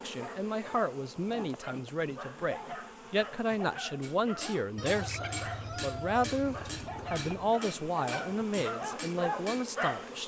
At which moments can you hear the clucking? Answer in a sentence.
The clucking can be heard from 4.8 to 7.5 s.